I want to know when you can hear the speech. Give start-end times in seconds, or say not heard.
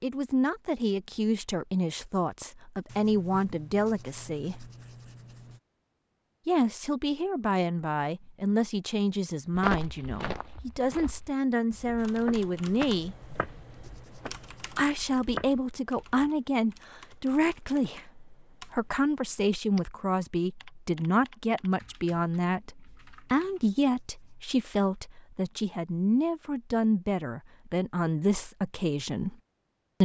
0.0-4.7, 6.5-13.2, 14.8-29.4.